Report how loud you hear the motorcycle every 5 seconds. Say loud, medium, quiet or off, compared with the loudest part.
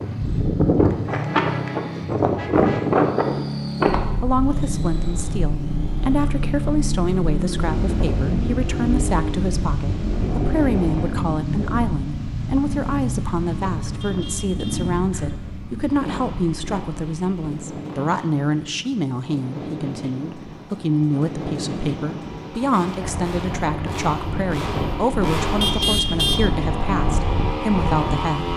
loud, loud, loud, medium, medium, loud.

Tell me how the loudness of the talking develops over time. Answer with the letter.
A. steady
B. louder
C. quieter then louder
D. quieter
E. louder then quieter
A.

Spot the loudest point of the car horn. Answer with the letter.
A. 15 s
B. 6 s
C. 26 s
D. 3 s
C.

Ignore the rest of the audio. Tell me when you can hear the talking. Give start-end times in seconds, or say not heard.
4.2-28.5.